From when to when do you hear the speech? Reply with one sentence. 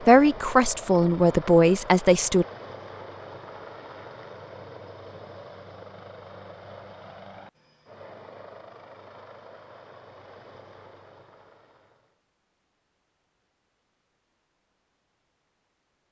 The speech can be heard from 0.1 to 2.5 s.